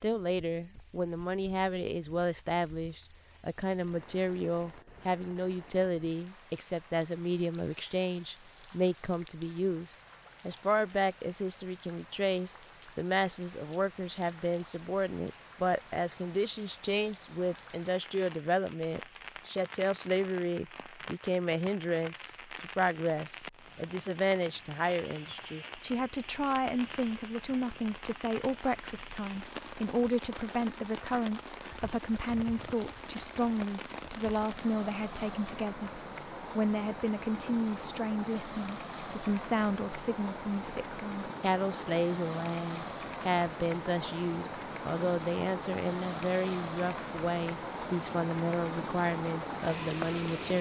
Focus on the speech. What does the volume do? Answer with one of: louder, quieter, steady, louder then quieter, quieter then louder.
steady.